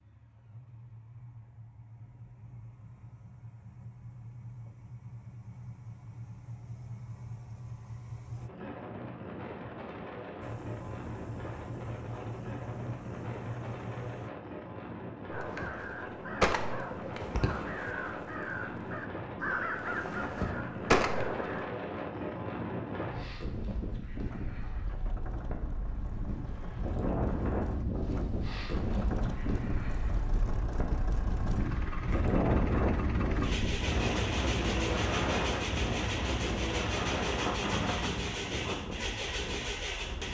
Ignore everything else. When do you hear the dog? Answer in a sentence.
The dog can't be heard in this clip.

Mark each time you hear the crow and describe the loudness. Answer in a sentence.
The crow can be heard from 15.3 to 21.7 s, getting quieter then louder.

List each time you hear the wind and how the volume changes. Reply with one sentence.
The wind can be heard from 8.3 to 40.2 s, getting louder.